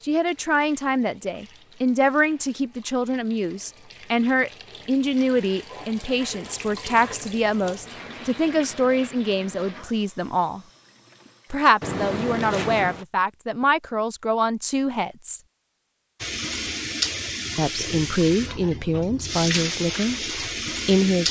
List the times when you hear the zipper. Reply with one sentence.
You can hear the zipper from 11.8 to 13.1 s.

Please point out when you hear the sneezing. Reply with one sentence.
You can't hear the sneezing here.